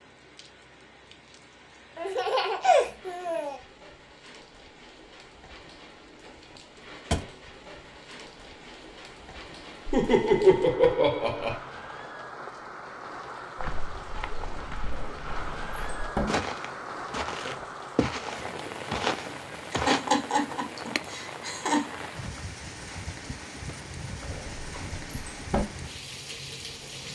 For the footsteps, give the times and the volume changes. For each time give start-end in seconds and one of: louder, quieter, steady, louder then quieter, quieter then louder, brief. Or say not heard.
13.6-20.0 louder.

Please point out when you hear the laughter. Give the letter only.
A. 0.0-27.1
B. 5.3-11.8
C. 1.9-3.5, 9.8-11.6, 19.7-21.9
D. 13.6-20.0
C.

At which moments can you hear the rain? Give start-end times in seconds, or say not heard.
0.0-27.1.